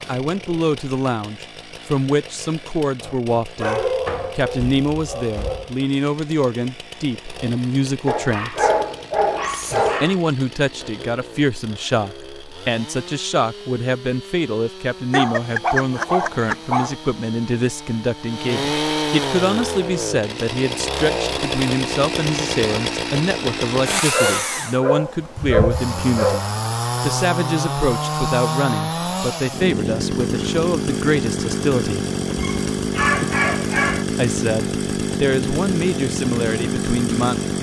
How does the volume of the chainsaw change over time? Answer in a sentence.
The loudness of the chainsaw goes up.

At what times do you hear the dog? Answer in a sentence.
You can hear the dog from 3.5 to 5.8 s, from 8.1 to 10.2 s, from 15.1 to 16.9 s, from 24.1 to 26.4 s and from 32.2 to 34.0 s.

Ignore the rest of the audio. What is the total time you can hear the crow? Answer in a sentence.
You can't hear the crow here.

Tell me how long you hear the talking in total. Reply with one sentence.
You can hear the talking for 34 seconds altogether.